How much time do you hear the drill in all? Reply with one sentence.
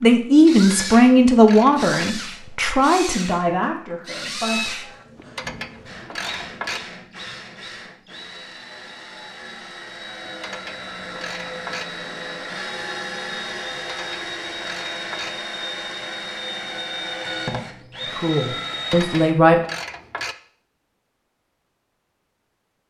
The drill can be heard for 19 seconds in total.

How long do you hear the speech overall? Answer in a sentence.
You can hear the speech for 6 seconds altogether.